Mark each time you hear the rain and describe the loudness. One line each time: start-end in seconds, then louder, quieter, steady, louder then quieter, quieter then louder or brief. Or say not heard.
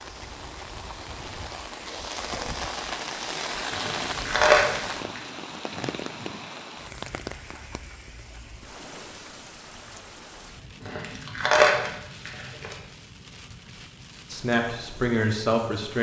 0.0-15.9 quieter.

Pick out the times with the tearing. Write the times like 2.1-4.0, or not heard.
3.7-5.2, 10.8-12.8.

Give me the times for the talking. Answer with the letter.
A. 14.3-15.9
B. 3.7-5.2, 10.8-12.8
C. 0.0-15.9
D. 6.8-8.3
A.